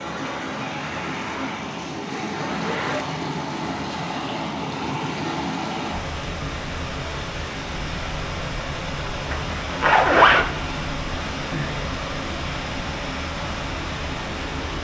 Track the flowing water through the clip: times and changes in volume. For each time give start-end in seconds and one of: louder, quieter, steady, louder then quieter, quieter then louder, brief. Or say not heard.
0.0-14.7 steady.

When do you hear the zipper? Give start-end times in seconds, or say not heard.
2.4-3.2, 9.3-10.5.